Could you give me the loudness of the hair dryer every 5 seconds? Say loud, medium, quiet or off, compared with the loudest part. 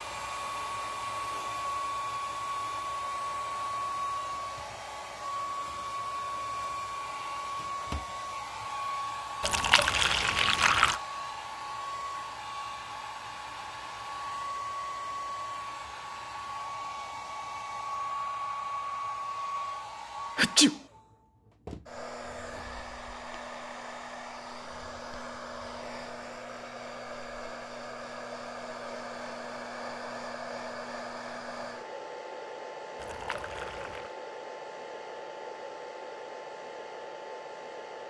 loud, loud, loud, loud, medium, medium, medium, medium.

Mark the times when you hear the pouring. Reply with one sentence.
The pouring can be heard from 9.4 to 11.0 s and from 33.0 to 34.1 s.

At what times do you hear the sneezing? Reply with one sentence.
The sneezing can be heard from 20.4 to 20.8 s.